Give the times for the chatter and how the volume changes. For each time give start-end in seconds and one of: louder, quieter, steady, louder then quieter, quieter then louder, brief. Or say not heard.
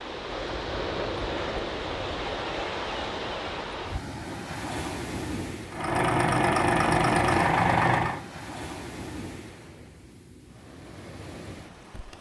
not heard.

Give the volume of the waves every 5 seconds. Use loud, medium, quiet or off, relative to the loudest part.
loud, medium, quiet.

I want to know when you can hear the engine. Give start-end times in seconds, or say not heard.
5.7-8.2.